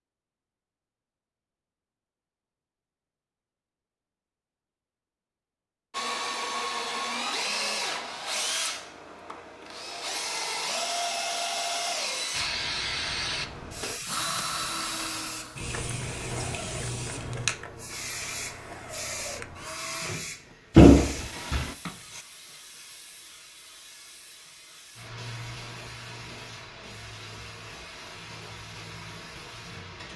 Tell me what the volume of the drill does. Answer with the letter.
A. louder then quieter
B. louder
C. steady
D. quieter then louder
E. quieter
E.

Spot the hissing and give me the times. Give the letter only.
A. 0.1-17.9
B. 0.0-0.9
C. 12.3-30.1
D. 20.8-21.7
C.